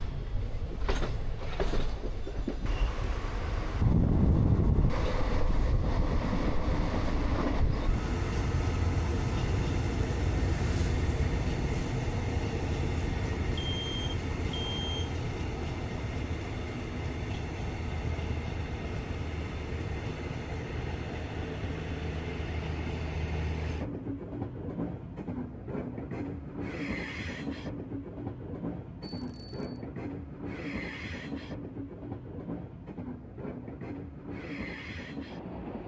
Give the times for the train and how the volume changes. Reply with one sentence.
The train can be heard from 0.0 to 35.8 s, getting quieter.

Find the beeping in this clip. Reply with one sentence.
The beeping can be heard from 13.6 to 15.2 s and from 29.0 to 29.9 s.